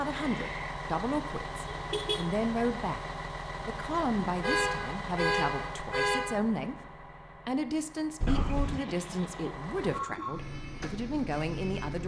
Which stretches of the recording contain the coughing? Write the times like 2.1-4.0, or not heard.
0.1-0.8, 8.2-9.6.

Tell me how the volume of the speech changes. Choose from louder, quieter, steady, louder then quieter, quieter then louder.
steady.